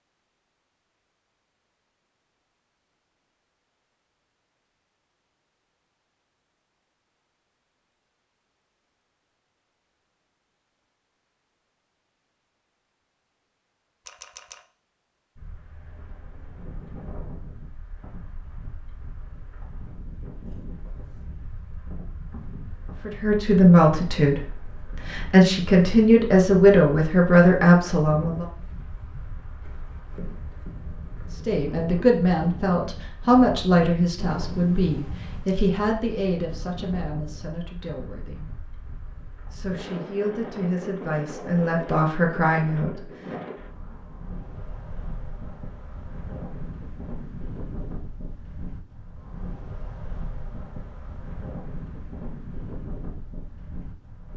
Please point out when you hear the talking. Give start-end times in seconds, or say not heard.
23.1-28.4, 31.3-38.5, 39.5-43.0.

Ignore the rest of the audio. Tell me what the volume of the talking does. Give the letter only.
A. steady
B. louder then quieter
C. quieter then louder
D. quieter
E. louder
C.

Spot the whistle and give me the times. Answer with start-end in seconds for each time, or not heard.
not heard.